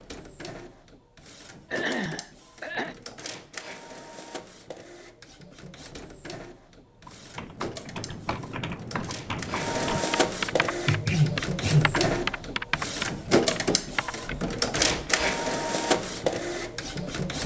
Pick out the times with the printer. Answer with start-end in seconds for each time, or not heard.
0.0-17.4.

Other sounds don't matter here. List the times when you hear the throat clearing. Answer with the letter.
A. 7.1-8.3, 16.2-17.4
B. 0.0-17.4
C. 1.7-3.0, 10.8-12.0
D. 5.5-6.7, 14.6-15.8
C.